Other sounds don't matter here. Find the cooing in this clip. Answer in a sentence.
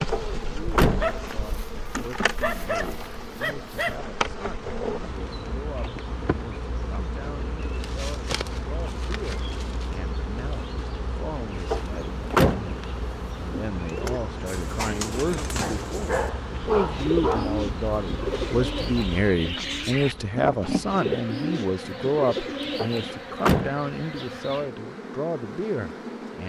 You can hear the cooing from 13.8 to 23.2 s.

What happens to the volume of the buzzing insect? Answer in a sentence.
The loudness of the buzzing insect stays about the same.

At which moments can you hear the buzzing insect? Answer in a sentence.
You can hear the buzzing insect from 0.0 to 26.4 s.